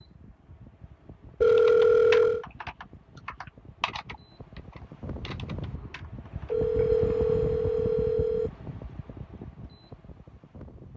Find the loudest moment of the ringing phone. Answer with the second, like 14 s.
2 s.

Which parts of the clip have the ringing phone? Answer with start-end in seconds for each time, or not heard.
1.4-2.5, 6.5-8.5.